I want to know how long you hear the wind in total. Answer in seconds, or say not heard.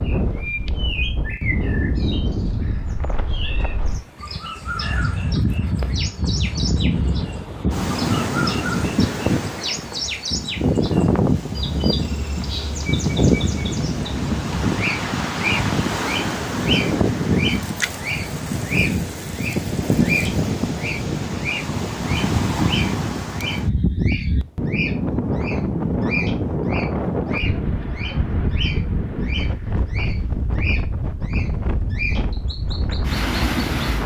34 s.